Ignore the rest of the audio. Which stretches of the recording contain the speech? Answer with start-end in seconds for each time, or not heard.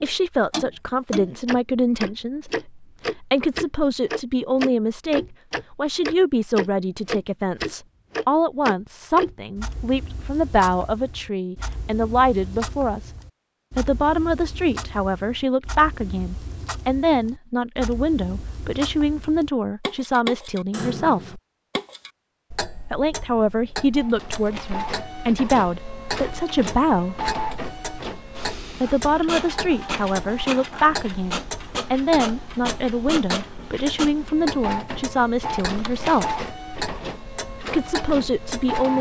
0.0-13.1, 13.8-21.4, 22.9-27.2, 28.8-36.4, 37.7-38.9.